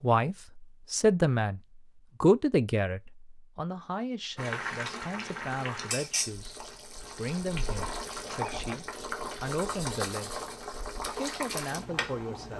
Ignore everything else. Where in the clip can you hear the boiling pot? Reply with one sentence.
The boiling pot can be heard from 4.3 to 12.5 s.